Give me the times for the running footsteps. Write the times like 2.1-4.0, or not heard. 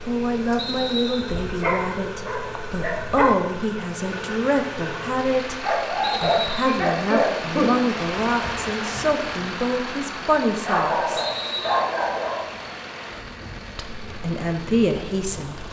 not heard.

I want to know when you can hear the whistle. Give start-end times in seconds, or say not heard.
0.6-1.4, 6.0-6.8, 11.2-11.8.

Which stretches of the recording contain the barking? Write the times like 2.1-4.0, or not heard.
1.4-3.3, 5.6-7.7, 10.7-12.4.